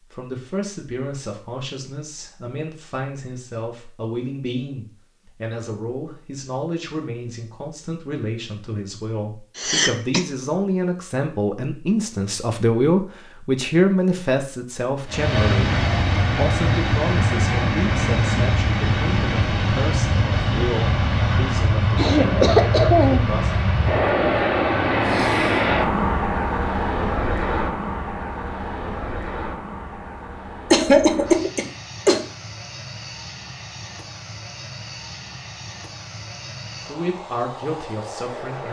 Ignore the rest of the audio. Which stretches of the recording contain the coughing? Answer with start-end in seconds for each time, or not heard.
9.6-10.2, 21.9-23.3, 30.7-32.2.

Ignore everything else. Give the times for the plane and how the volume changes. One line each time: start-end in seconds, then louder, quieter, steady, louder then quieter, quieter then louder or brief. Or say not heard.
15.1-38.6 quieter.